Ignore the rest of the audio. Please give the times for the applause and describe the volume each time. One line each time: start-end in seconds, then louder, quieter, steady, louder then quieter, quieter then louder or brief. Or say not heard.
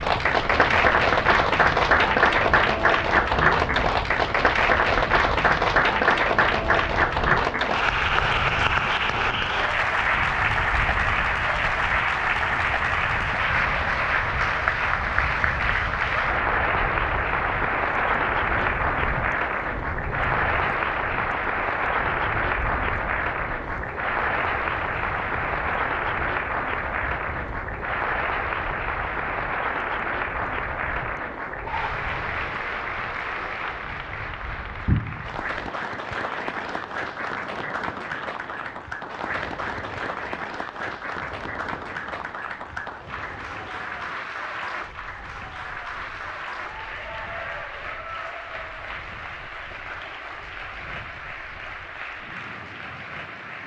0.0-53.6 quieter.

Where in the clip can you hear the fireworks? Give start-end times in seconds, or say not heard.
not heard.